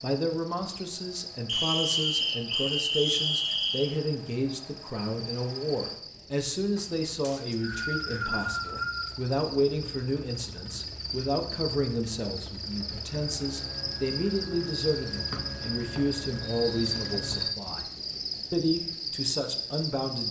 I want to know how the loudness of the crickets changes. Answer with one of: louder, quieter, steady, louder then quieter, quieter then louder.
louder.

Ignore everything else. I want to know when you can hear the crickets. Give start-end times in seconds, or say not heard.
0.0-20.2.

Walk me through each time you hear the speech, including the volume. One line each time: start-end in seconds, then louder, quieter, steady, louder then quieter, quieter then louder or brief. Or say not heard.
0.0-17.9 steady
18.5-20.2 brief.